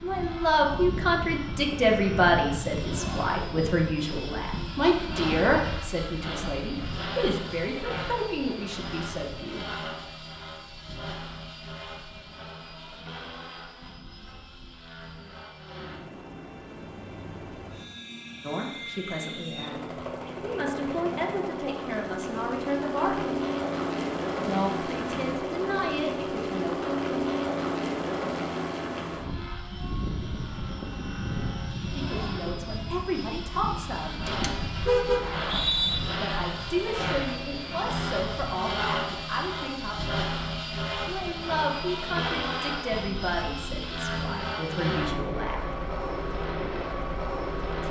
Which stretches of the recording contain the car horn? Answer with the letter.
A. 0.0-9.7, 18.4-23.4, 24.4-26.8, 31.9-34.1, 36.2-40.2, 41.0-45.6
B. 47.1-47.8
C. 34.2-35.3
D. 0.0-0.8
C.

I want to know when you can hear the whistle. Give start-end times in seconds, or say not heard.
35.2-36.0.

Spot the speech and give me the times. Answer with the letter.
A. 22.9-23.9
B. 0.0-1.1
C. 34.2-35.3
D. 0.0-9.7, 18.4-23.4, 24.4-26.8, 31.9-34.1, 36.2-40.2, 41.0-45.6
D.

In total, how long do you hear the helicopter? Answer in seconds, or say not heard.
48 s.